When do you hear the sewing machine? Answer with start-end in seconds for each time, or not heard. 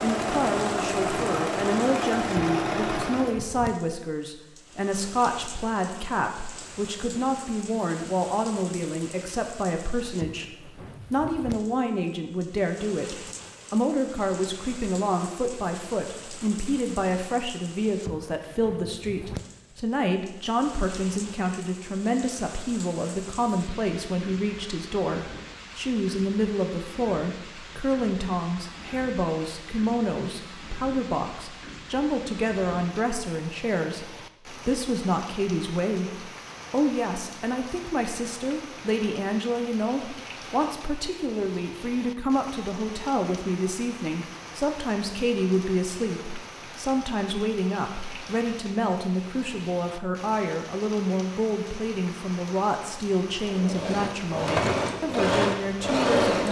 0.0-3.5, 53.5-56.4.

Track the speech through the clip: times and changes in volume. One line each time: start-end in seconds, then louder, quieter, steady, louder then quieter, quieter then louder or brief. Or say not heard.
0.0-56.4 steady.